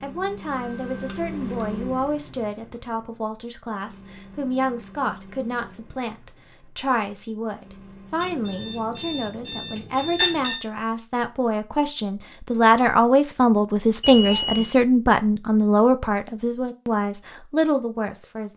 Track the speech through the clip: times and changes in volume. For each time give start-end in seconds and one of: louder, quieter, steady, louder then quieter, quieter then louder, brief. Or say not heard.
0.0-18.5 louder.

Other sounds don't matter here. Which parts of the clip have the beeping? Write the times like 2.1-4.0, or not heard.
0.5-1.6, 8.2-10.6, 14.0-14.8.